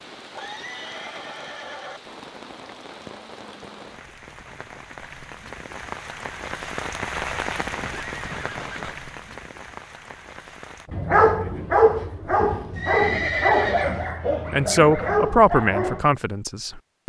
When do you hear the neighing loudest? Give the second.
13 s.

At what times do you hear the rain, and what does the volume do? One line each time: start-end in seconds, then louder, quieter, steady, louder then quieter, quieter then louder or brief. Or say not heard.
0.0-10.9 louder then quieter.